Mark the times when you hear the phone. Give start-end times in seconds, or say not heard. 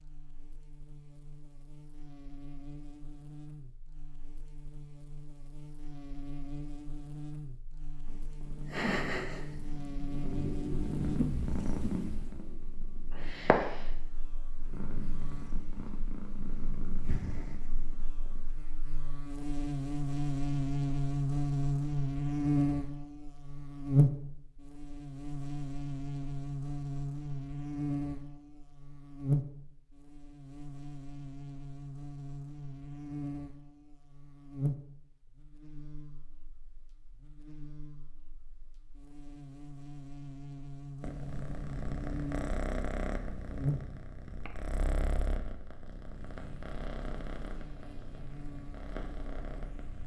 not heard.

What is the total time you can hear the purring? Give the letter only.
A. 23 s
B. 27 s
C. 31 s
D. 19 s
D.